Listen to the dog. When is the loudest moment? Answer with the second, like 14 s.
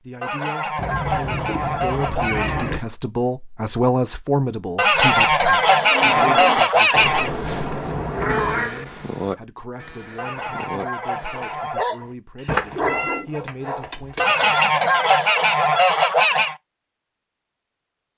13 s.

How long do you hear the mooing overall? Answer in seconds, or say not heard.
6 s.